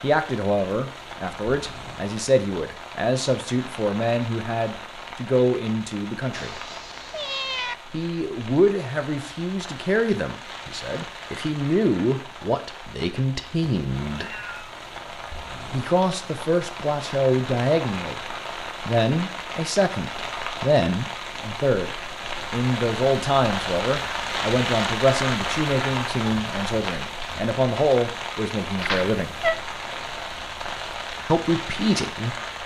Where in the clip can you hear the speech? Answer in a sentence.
You can hear the speech from 0.0 to 6.5 s, from 7.9 to 14.3 s, from 15.7 to 18.2 s, from 18.9 to 29.4 s and from 31.2 to 32.6 s.